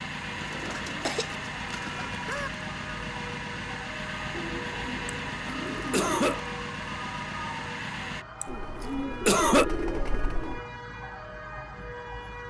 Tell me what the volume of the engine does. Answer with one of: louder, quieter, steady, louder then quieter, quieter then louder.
steady.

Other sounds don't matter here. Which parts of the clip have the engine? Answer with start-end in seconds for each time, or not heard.
0.0-8.2.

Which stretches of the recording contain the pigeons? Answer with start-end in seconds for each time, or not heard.
0.3-2.2, 4.3-6.3, 8.4-10.6.